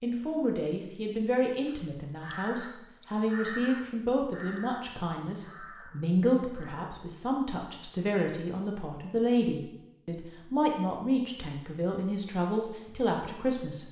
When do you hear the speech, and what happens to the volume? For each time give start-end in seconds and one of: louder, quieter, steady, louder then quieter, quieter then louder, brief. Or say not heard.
0.0-13.8 steady.